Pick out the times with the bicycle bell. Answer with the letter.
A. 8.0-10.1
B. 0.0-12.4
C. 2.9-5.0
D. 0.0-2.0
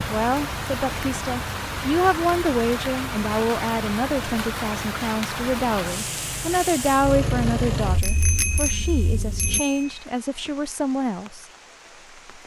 A.